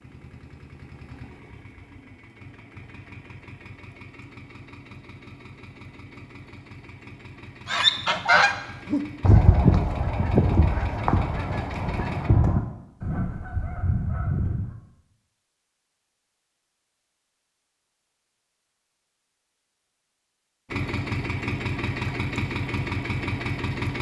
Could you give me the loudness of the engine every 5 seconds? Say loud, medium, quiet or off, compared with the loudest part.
quiet, quiet, medium, off, loud.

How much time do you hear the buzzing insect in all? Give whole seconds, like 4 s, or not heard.
not heard.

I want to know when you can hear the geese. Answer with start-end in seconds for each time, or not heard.
7.7-14.8.